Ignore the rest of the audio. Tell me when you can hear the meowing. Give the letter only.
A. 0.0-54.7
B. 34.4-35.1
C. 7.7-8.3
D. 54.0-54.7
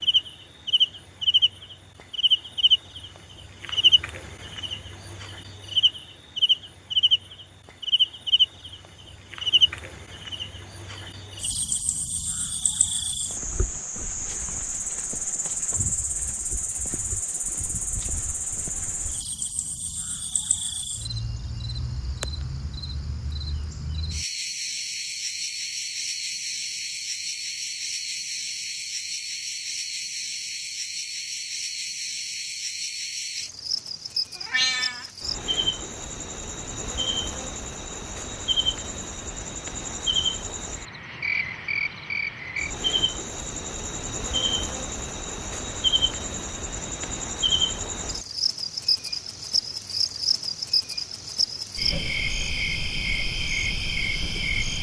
B.